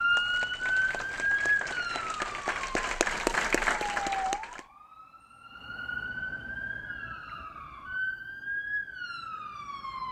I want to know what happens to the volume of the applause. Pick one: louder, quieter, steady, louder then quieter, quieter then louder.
louder.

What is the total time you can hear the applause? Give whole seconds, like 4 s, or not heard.
5 s.